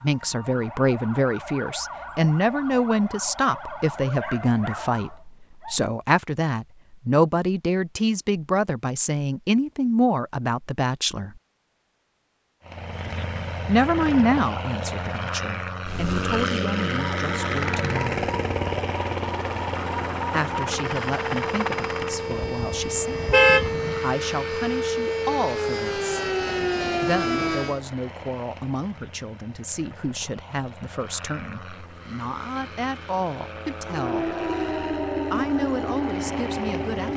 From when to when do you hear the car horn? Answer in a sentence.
The car horn can be heard from 22.3 to 24.0 s.